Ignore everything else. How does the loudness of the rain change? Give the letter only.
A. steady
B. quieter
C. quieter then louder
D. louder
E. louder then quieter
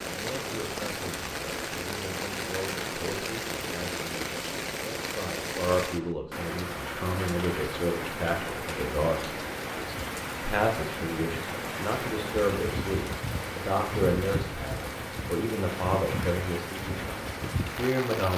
A.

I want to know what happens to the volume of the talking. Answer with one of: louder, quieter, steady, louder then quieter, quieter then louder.
louder.